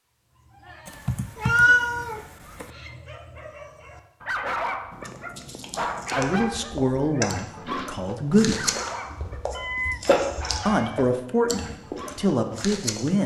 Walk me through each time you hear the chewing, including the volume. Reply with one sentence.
The chewing can be heard from 5.0 to 13.2 s, getting louder then quieter.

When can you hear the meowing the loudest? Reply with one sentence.
The loudest moment of the meowing is at 2 seconds.